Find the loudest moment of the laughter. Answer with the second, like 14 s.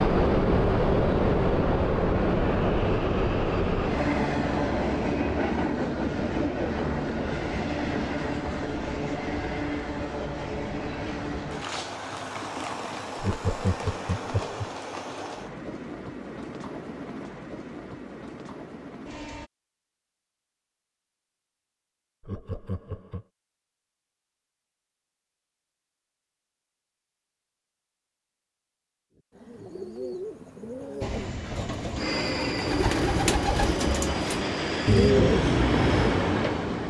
14 s.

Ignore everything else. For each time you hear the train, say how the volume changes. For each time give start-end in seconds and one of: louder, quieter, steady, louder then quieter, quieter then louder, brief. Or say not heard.
0.0-19.5 quieter
31.0-36.8 louder.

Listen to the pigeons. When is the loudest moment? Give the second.
35 s.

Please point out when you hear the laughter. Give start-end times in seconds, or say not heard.
13.2-14.7, 22.2-23.2.